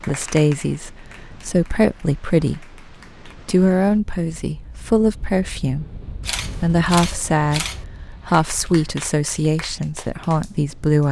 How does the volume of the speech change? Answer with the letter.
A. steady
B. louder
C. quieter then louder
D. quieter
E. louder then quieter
A.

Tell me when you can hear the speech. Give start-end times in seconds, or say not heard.
0.1-11.0.